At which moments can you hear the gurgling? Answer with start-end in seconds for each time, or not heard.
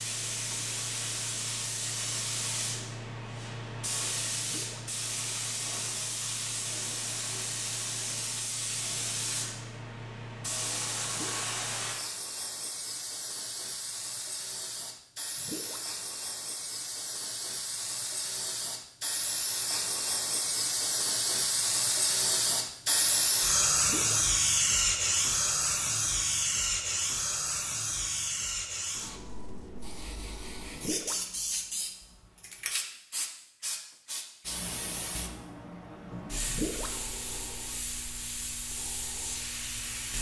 4.4-4.8, 11.1-11.5, 15.3-15.8, 23.8-24.2, 30.7-31.2, 36.5-37.0.